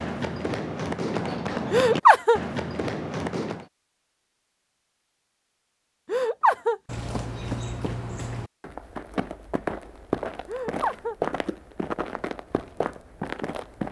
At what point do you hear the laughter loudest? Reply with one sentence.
The loudest moment of the laughter is at 2 seconds.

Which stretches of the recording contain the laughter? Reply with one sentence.
You can hear the laughter from 1.7 to 2.4 s, from 6.0 to 6.8 s and from 10.4 to 11.2 s.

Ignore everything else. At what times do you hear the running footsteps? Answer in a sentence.
The running footsteps can be heard from 0.0 to 3.6 s and from 6.8 to 13.8 s.